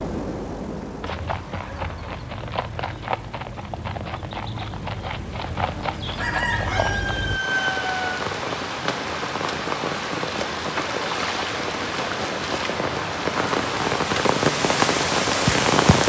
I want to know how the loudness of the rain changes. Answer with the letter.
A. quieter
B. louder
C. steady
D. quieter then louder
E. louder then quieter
B.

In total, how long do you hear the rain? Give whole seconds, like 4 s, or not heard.
9 s.